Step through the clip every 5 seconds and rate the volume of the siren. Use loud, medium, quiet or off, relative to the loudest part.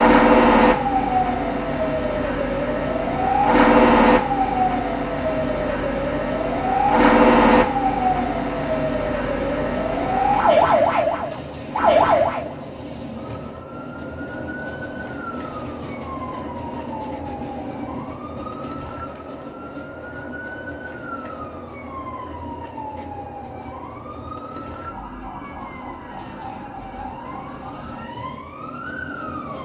loud, loud, loud, quiet, quiet, quiet.